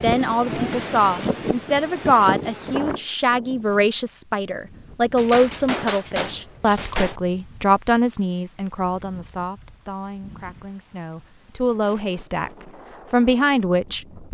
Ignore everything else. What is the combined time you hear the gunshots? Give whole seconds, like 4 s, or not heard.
2 s.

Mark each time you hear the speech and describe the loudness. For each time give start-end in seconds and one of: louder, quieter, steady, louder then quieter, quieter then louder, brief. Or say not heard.
0.0-12.5 quieter
13.1-14.2 brief.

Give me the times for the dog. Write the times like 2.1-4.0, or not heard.
not heard.